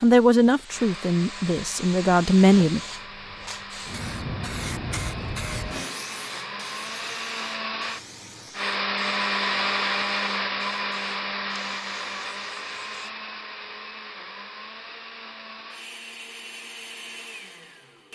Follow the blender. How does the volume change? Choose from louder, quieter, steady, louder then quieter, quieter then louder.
louder then quieter.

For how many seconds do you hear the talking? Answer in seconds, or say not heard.
3 s.